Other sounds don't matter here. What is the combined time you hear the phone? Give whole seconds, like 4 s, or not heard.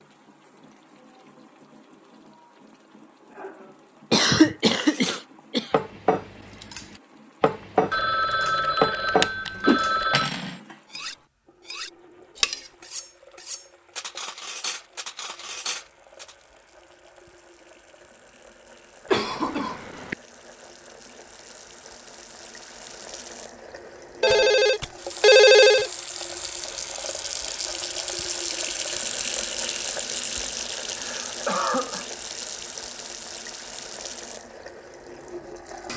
4 s.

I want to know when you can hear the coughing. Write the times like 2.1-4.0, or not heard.
4.1-5.7, 19.1-20.1, 30.9-32.0.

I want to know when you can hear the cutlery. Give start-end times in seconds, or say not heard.
4.8-16.4.